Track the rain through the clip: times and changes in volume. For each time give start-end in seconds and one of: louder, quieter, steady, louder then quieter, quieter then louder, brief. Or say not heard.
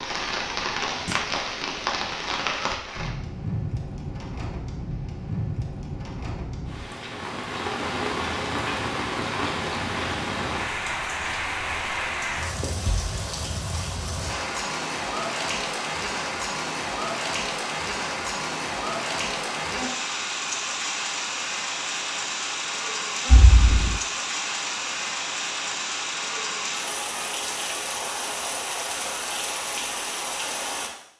0.0-30.9 steady.